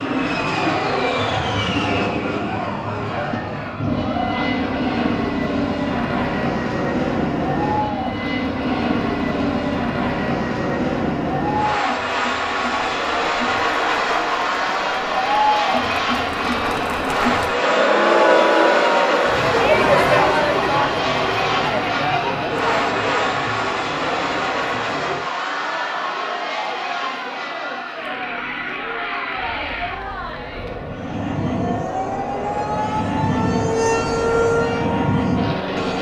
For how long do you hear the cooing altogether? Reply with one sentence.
You can't hear the cooing here.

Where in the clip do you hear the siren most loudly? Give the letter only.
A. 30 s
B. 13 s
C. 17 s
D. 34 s
D.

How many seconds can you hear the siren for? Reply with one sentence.
The siren can be heard for 6 seconds in total.